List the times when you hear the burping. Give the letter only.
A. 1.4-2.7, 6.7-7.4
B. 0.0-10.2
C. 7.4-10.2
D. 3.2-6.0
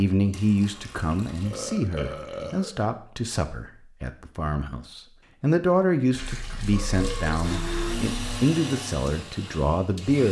A.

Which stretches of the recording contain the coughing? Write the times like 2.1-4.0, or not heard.
not heard.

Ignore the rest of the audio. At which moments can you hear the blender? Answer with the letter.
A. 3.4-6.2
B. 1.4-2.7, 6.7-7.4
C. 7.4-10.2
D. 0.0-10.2
C.